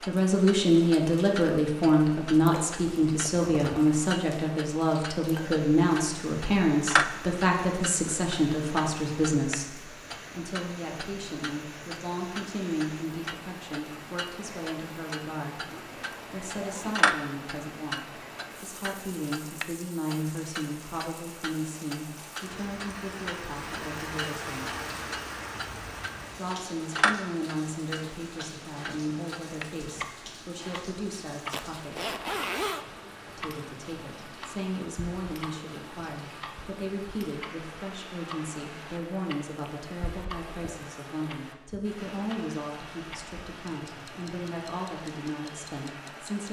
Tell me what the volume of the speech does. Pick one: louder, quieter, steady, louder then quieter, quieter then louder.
quieter.